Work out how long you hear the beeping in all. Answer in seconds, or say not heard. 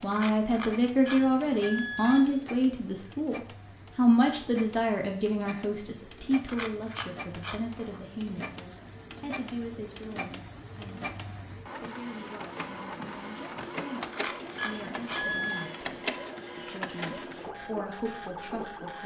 2 s.